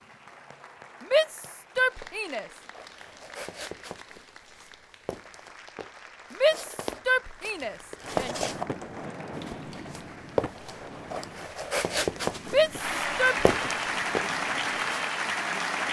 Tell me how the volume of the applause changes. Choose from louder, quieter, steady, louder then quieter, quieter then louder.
louder.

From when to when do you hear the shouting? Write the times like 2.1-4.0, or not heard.
1.0-2.5, 6.3-8.3, 12.4-13.4.